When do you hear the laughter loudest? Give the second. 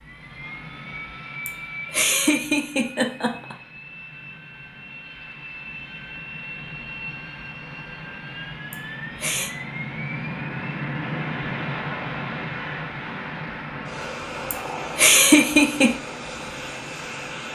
15 s.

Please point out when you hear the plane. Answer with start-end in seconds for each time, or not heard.
0.0-17.5.